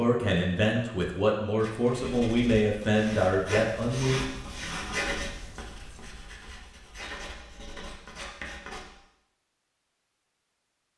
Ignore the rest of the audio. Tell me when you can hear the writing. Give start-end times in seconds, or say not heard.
1.6-8.9.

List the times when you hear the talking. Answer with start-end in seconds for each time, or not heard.
0.0-4.2.